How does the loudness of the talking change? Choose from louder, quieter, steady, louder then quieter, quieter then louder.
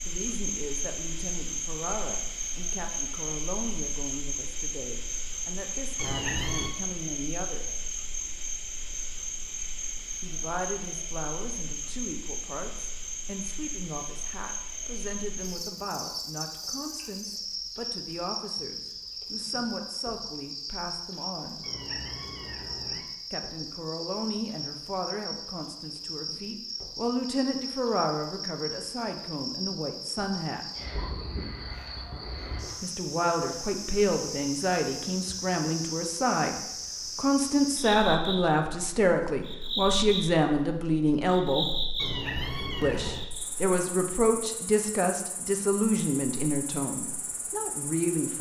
louder.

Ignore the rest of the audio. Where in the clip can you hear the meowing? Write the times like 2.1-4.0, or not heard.
6.0-6.8, 21.6-23.1, 42.0-43.3.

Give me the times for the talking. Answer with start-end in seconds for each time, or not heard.
0.1-7.7, 10.2-21.6, 23.3-30.6, 32.8-41.8, 42.8-48.3.